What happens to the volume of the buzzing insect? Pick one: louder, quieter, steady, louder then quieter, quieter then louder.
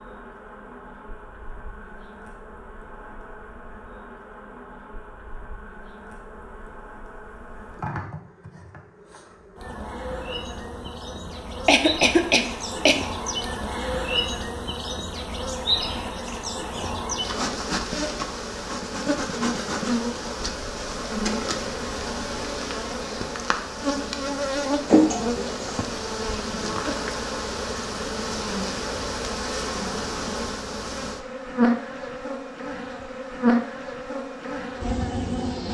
louder.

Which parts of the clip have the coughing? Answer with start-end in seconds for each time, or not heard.
11.7-12.9, 24.9-25.9.